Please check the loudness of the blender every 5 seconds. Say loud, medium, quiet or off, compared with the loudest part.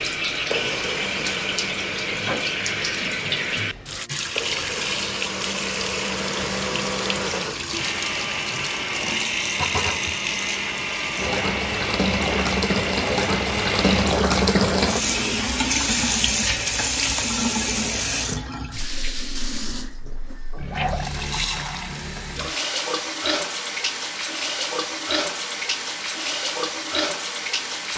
medium, loud, loud, off, off, off.